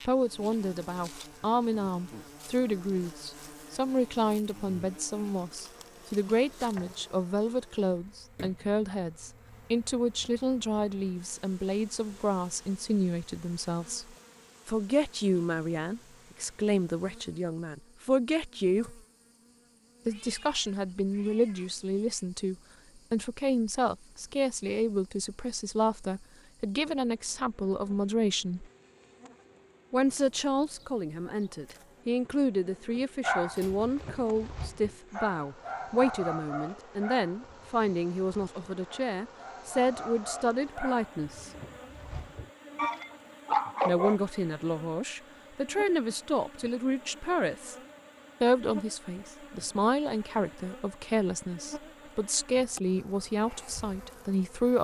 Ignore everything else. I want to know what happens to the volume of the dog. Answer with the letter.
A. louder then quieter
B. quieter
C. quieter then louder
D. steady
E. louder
C.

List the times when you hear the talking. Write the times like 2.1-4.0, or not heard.
0.1-19.0, 20.1-28.7, 29.9-41.5, 43.9-47.8, 48.4-54.7.